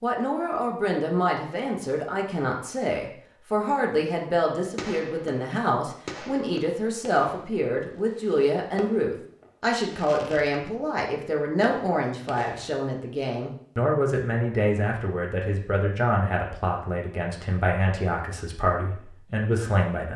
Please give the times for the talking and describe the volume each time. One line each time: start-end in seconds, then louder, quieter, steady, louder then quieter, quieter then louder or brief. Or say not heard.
0.0-20.1 steady.